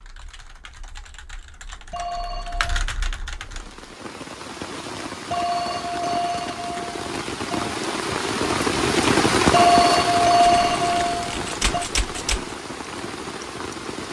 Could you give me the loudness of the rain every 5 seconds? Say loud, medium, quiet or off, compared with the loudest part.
quiet, loud, medium.